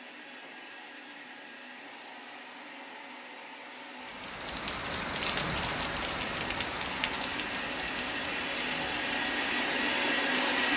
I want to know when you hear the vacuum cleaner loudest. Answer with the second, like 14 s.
10 s.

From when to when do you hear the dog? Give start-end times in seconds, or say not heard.
not heard.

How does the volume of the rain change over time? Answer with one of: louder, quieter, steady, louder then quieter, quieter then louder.
quieter.